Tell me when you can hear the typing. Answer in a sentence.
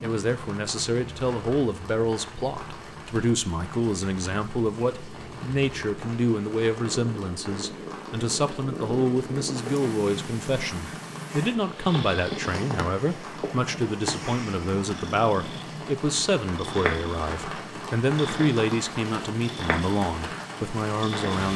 You can't hear the typing here.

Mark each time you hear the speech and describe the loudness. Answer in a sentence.
You can hear the speech from 0.0 to 21.5 s, at a steady volume.